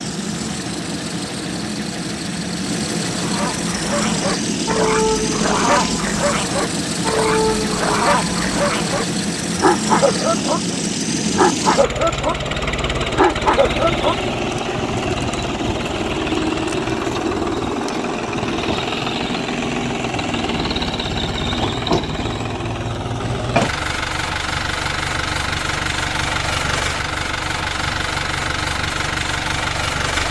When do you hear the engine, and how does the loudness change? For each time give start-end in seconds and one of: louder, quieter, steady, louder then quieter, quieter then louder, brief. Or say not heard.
0.0-30.2 steady.